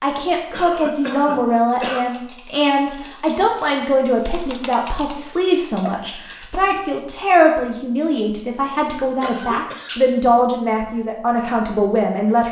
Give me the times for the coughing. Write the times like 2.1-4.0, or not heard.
0.5-2.0, 6.0-6.5, 9.2-10.0.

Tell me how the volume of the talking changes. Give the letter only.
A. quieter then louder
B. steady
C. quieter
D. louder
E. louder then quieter
B.